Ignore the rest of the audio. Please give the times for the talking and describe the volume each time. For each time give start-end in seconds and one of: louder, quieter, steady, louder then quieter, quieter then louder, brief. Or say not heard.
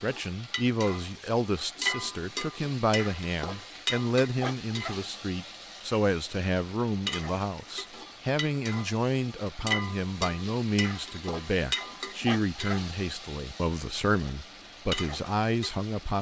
0.0-16.1 steady.